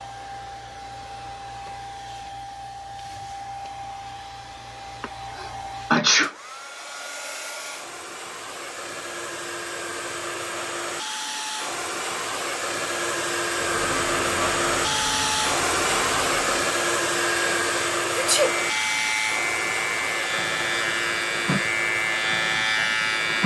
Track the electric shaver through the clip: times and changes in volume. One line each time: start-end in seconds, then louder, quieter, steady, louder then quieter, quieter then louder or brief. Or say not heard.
13.5-23.4 louder.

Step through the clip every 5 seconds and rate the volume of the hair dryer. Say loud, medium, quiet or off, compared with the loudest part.
quiet, medium, loud, loud, medium.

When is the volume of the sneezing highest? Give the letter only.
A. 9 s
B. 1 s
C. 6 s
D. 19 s
C.